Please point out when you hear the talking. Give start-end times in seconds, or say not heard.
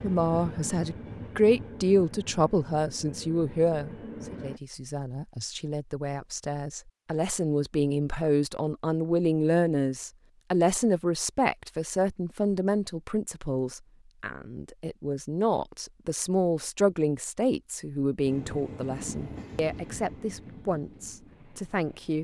0.0-22.1.